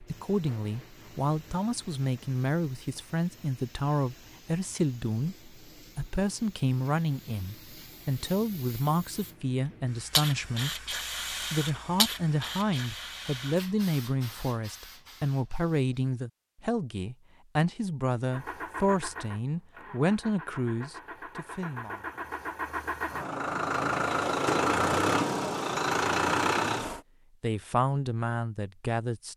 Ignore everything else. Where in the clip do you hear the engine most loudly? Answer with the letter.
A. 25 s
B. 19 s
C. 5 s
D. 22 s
A.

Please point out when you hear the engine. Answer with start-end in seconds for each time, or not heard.
18.2-27.0.